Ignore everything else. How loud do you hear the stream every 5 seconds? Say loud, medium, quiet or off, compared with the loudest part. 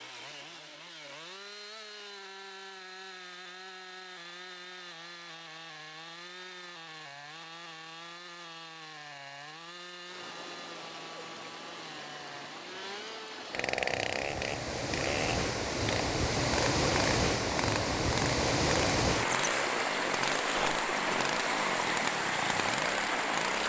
off, off, quiet, loud, loud.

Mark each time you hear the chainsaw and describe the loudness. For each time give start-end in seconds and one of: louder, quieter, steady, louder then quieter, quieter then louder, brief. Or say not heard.
0.0-23.6 louder.